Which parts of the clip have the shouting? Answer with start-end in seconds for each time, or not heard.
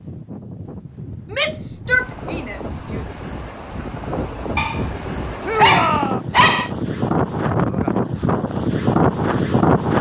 1.3-3.2, 5.4-6.2.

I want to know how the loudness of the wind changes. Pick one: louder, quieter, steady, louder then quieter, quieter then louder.
louder.